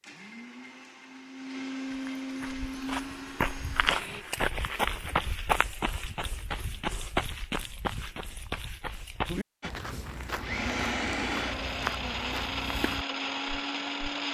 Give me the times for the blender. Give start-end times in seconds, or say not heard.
0.0-4.2, 9.6-14.2.